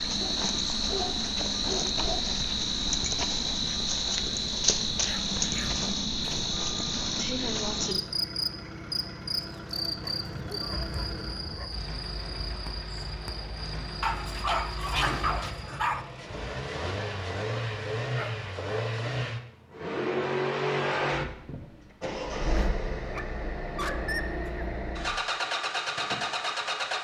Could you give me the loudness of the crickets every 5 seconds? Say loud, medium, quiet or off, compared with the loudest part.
loud, loud, medium, off, off, off.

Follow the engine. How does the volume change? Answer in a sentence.
The loudness of the engine goes up.